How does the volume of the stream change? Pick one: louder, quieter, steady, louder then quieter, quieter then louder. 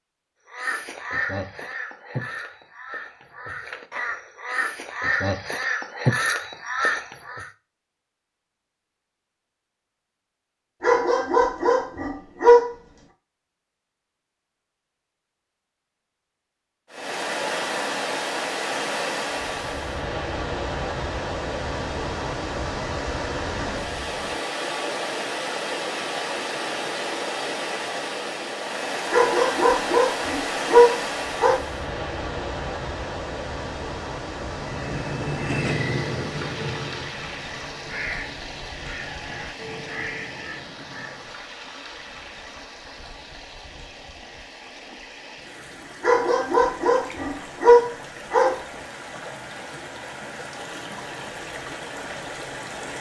quieter.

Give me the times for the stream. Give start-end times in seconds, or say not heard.
16.9-52.9.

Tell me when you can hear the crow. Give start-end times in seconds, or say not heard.
0.5-7.5, 34.4-41.5.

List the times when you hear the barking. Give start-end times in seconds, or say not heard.
10.8-12.7, 29.1-31.6, 46.0-48.6.